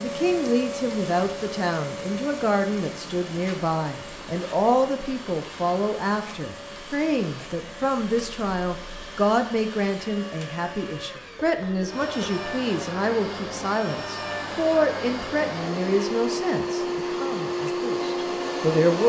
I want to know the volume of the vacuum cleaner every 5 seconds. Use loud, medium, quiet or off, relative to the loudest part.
medium, quiet, medium, loud.